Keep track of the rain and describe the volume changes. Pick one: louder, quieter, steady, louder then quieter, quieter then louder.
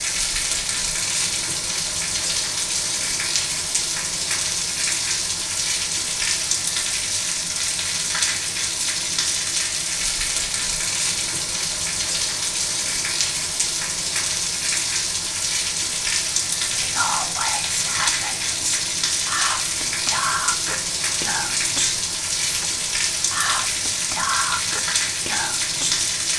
steady.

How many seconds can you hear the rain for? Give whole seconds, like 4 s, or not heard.
26 s.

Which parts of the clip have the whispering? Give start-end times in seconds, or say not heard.
16.6-22.6, 23.3-26.1.